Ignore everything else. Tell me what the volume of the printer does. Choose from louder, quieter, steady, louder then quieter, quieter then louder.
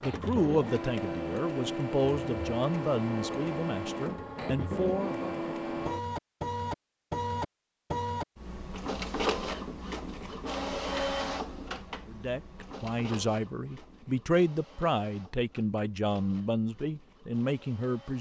quieter.